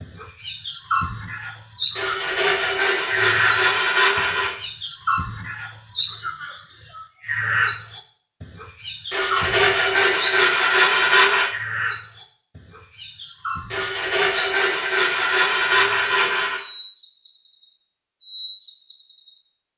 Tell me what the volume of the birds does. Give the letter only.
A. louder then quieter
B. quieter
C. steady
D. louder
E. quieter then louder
B.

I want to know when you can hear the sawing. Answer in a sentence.
You can hear the sawing from 1.9 to 4.5 s, from 9.1 to 11.5 s and from 13.7 to 16.6 s.